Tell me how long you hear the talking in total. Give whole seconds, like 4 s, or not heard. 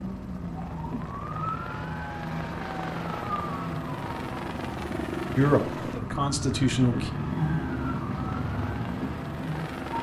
2 s.